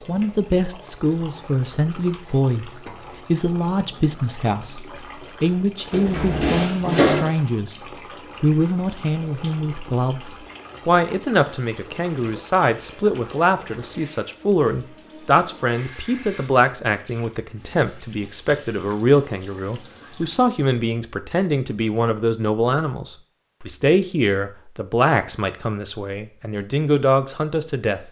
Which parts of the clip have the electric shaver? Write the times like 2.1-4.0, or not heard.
not heard.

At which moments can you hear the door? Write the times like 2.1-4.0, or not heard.
5.9-7.3.